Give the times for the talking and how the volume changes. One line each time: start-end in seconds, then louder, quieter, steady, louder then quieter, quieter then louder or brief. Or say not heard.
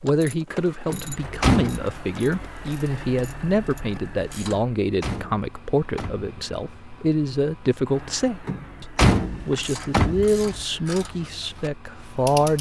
0.0-12.5 steady.